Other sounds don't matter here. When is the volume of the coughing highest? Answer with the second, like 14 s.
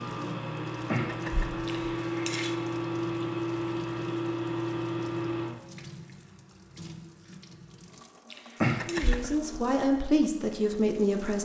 9 s.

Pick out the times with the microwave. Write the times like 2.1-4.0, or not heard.
0.0-5.5.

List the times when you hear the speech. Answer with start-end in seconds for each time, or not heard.
8.8-11.3.